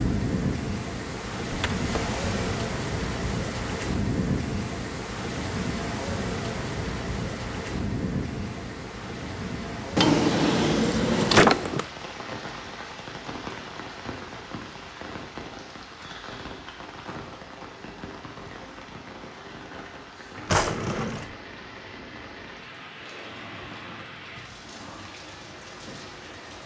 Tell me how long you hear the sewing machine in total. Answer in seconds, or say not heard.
4 s.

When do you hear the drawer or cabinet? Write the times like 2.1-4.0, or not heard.
1.5-2.5, 9.9-11.8, 20.4-21.3.